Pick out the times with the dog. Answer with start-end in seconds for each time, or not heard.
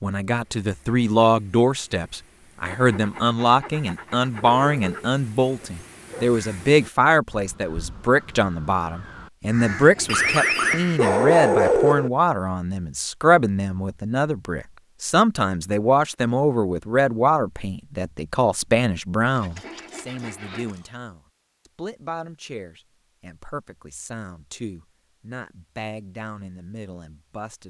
4.4-6.2, 10.1-12.1, 19.4-20.9.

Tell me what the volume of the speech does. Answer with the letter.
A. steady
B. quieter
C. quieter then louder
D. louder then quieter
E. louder
B.